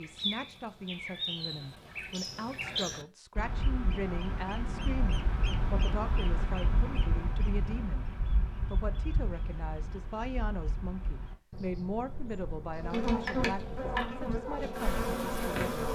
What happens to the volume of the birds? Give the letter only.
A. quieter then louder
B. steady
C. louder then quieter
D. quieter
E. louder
D.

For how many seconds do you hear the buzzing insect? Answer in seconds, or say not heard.
3 s.